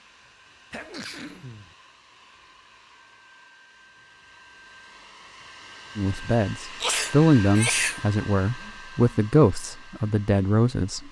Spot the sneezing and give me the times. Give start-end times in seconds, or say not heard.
0.7-1.8, 6.8-8.0.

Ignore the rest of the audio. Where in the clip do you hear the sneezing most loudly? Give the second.
8 s.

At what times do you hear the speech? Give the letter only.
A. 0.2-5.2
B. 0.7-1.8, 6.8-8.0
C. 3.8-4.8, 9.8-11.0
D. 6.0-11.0
D.